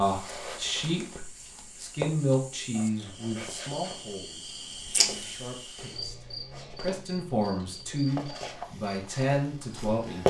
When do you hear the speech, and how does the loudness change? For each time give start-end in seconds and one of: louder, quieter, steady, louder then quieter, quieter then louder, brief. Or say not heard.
0.0-10.2 quieter then louder.